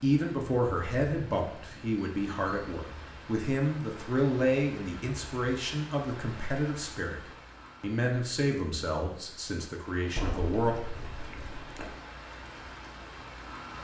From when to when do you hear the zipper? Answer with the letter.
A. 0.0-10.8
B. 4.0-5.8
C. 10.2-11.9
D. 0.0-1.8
C.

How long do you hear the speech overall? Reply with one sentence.
You can hear the speech for 11 seconds altogether.